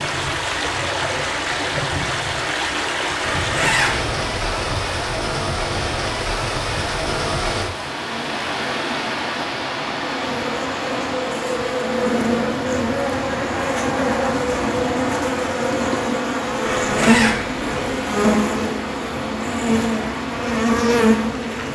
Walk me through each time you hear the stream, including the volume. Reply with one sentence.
The stream can be heard from 0.0 to 21.7 s, getting quieter.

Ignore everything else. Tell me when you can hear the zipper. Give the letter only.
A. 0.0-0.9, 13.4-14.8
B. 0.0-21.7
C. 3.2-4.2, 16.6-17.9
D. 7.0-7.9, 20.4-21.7
C.